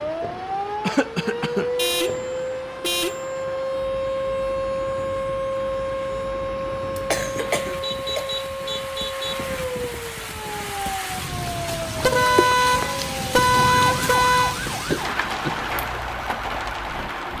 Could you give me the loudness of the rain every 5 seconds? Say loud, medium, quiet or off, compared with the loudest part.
medium, medium, loud, loud.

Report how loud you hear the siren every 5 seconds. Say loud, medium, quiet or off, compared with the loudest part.
loud, loud, medium, medium.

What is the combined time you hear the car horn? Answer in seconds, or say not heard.
6 s.